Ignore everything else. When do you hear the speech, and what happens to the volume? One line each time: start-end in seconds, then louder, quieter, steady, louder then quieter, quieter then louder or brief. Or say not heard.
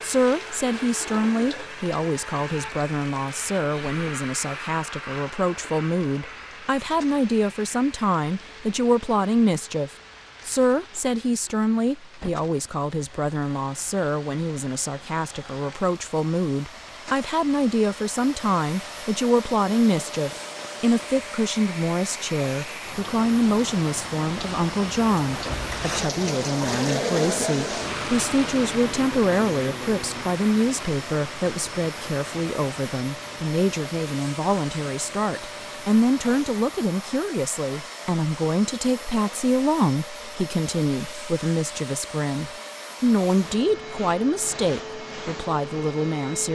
0.0-46.5 steady.